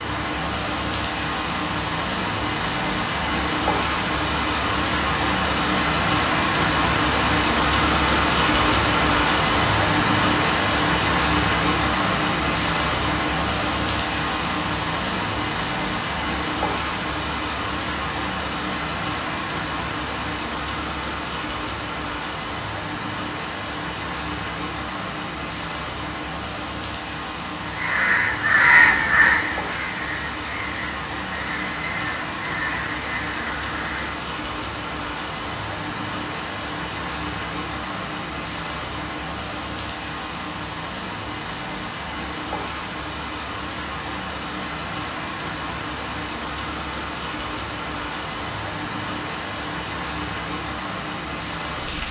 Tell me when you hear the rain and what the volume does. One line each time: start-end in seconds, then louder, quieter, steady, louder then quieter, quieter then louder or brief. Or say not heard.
0.0-52.0 quieter.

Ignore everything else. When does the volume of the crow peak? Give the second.
29 s.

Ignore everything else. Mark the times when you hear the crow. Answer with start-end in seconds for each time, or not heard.
27.6-34.1.